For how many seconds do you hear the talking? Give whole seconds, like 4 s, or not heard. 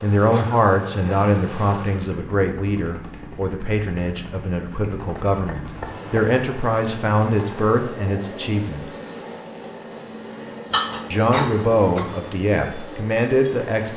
12 s.